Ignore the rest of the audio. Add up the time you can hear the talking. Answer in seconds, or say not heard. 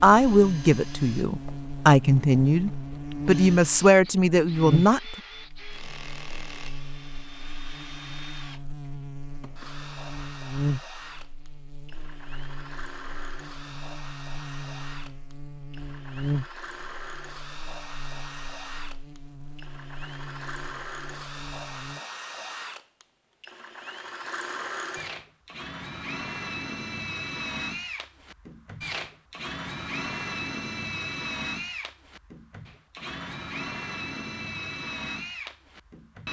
5 s.